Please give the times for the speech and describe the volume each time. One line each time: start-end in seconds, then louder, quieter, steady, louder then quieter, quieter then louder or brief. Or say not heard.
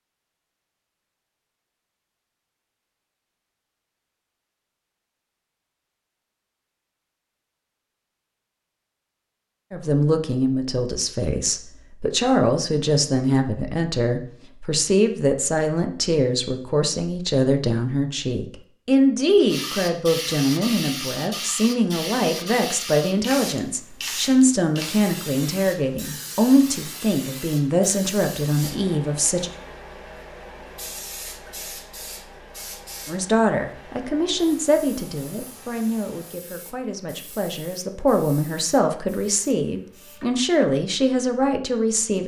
9.7-29.5 steady
33.0-42.2 quieter then louder.